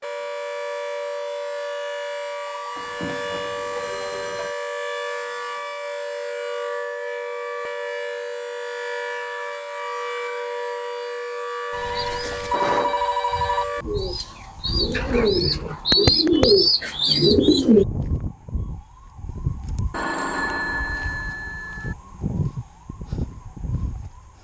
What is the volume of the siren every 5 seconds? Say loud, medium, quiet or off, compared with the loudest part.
loud, loud, loud, loud, medium.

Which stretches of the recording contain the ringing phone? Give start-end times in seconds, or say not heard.
2.8-4.5, 11.7-13.7, 19.9-21.9.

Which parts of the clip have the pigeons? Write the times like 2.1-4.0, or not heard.
11.9-17.9.